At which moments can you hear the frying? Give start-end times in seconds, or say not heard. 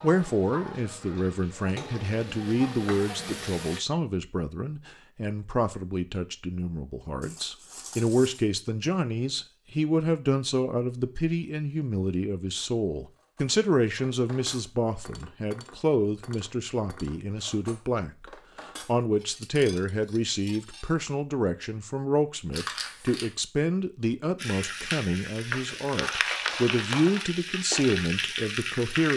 0.0-3.8, 24.4-29.1.